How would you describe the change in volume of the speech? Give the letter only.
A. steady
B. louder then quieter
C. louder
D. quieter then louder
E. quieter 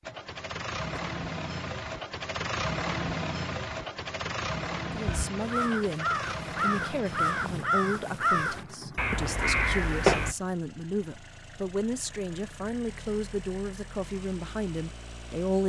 A.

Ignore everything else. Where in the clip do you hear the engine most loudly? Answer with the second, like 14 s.
3 s.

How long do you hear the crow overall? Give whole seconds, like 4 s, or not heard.
5 s.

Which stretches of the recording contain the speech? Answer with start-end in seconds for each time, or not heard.
4.8-15.6.